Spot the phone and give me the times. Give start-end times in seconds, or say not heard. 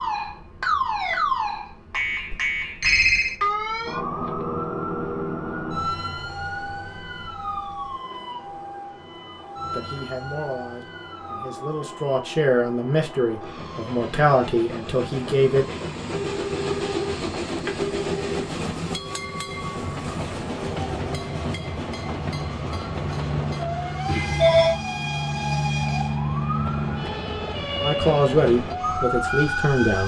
2.3-3.4, 16.1-18.4, 24.1-24.8.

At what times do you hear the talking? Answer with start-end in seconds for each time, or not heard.
9.7-15.7, 27.8-30.0.